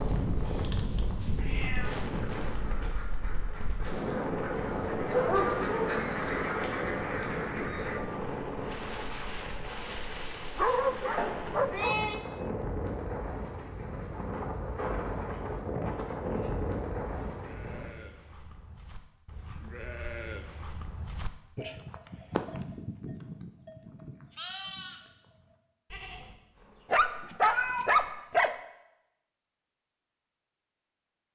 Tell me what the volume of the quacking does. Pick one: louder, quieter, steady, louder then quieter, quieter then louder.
louder.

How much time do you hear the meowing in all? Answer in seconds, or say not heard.
3 s.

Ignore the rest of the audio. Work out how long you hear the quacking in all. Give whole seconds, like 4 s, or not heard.
6 s.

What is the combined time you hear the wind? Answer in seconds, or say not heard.
18 s.